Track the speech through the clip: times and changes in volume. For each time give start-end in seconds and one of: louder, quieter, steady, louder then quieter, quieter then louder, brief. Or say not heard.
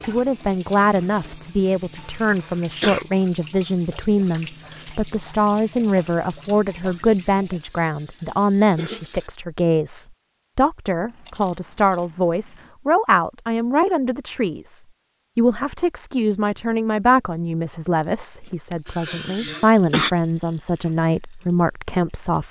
0.1-22.4 steady.